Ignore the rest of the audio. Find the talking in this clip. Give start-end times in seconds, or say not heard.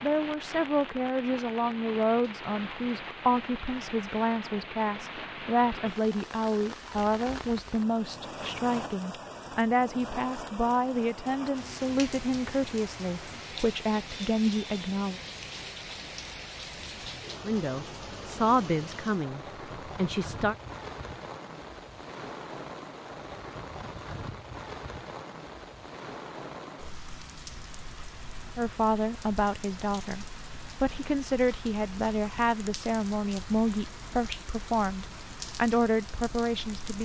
0.0-15.2, 17.4-20.6, 28.6-37.0.